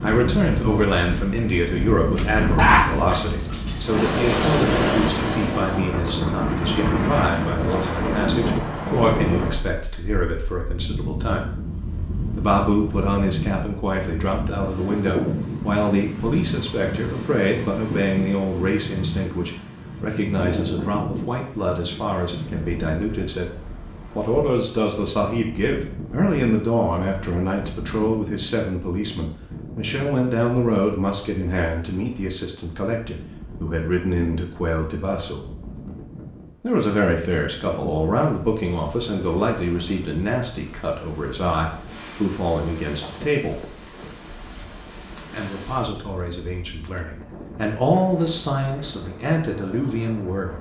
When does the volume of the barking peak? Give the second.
3 s.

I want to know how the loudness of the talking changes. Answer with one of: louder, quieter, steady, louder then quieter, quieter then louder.
steady.